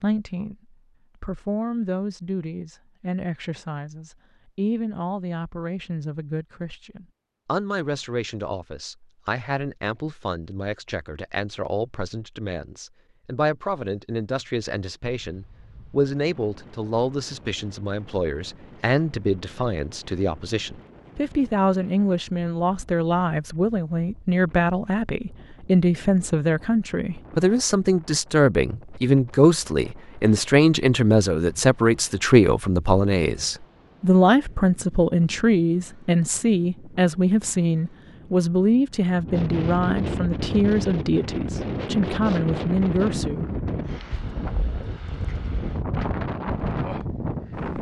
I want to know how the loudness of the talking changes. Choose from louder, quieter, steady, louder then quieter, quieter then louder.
louder.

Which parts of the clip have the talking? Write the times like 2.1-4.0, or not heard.
0.0-43.5.